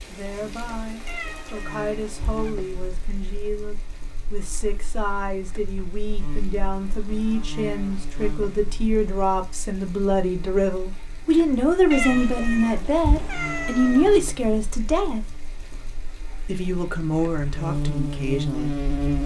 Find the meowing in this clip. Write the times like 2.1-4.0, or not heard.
1.1-2.5, 11.9-14.1.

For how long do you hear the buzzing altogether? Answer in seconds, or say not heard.
19 s.